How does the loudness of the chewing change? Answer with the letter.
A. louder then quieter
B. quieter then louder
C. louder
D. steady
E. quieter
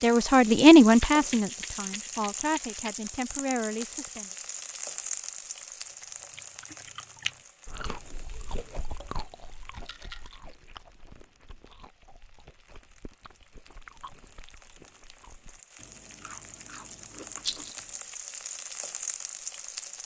B.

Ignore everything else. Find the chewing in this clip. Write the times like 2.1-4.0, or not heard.
5.9-18.0.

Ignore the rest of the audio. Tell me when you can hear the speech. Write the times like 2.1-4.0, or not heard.
0.0-4.3.